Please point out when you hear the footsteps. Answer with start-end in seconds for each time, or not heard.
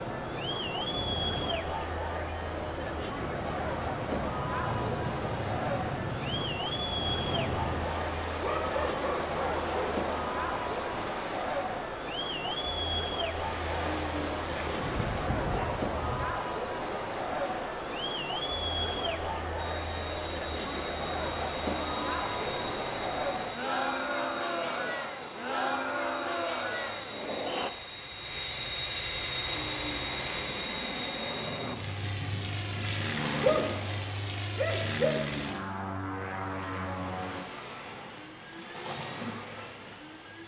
not heard.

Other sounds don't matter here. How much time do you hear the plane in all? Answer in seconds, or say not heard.
21 s.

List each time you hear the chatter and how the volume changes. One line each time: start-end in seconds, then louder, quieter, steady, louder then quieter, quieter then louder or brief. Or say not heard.
0.0-27.7 steady.